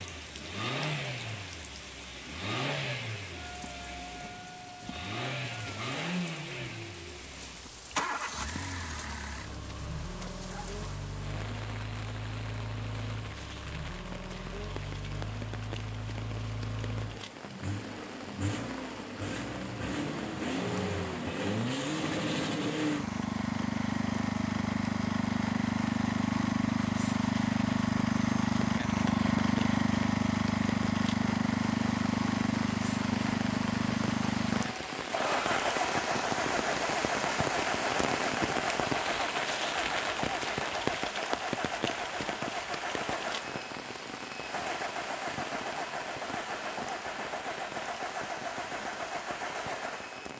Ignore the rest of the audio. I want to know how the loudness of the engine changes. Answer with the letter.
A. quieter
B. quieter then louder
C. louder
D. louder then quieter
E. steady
D.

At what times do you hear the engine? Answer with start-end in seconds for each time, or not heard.
0.0-50.3.